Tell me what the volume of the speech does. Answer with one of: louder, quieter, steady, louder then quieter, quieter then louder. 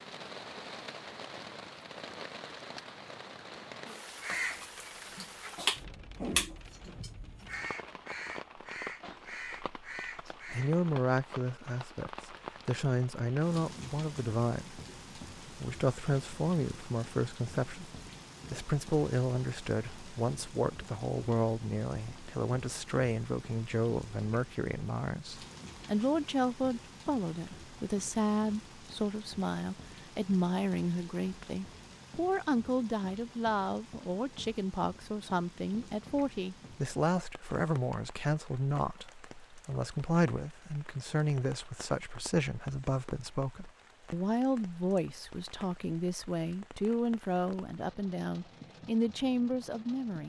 steady.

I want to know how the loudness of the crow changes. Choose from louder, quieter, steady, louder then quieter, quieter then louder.
louder then quieter.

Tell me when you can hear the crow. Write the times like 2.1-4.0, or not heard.
4.0-10.8.